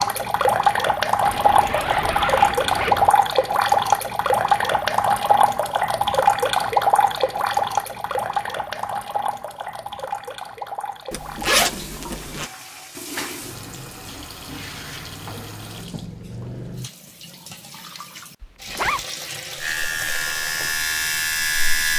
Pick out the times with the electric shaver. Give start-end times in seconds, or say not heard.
19.6-21.9.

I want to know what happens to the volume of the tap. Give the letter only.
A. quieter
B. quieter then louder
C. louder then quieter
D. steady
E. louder
A.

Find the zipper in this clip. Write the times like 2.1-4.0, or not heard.
1.2-3.1, 11.1-12.5, 18.4-19.1.